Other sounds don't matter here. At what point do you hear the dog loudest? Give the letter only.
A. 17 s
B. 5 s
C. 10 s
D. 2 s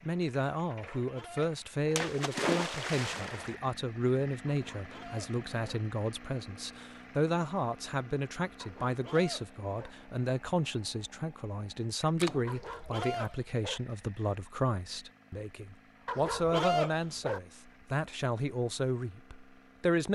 A.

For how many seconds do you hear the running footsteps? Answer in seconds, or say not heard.
not heard.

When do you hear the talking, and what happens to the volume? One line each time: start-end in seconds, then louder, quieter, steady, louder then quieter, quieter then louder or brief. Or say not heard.
0.0-20.1 steady.